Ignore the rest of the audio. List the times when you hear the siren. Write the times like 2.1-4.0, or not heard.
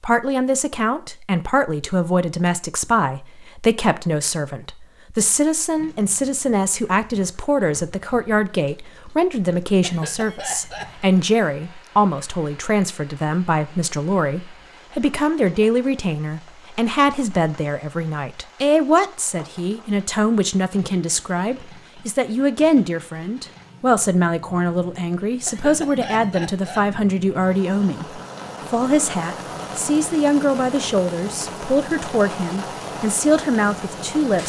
not heard.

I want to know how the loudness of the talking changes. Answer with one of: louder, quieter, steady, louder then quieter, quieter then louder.
steady.